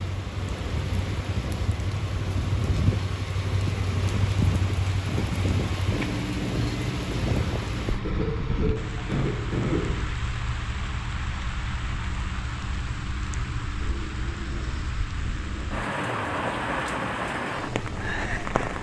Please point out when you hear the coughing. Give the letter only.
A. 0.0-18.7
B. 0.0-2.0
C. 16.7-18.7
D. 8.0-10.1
D.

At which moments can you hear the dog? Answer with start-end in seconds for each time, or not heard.
not heard.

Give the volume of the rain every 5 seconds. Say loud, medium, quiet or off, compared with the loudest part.
loud, loud, medium, loud.